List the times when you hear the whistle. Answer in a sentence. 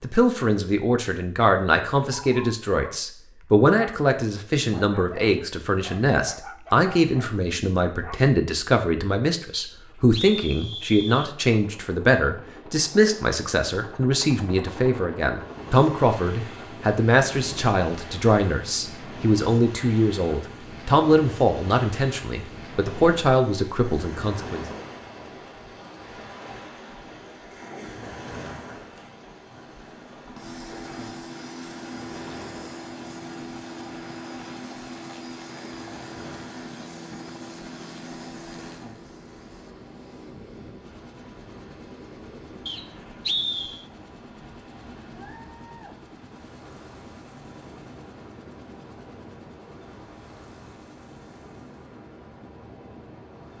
You can hear the whistle from 9.5 to 11.3 s and from 42.6 to 43.9 s.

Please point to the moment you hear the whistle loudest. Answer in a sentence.
The loudest moment of the whistle is at 43 seconds.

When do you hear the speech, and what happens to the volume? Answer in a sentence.
The speech can be heard from 0.0 to 24.6 s, at a steady volume.